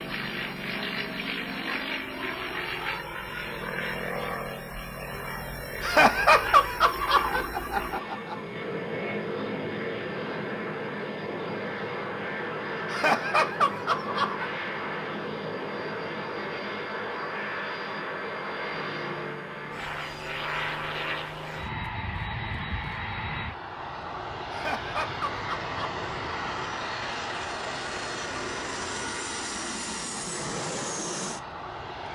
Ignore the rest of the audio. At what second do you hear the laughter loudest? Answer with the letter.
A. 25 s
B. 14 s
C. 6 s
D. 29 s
C.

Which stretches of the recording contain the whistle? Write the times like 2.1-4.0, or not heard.
not heard.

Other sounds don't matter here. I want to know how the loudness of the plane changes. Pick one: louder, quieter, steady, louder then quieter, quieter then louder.
steady.